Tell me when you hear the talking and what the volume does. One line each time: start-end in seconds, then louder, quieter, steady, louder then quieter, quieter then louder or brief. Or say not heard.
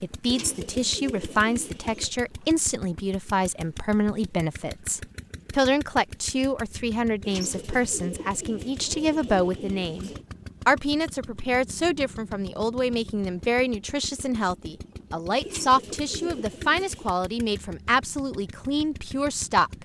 0.0-19.8 steady.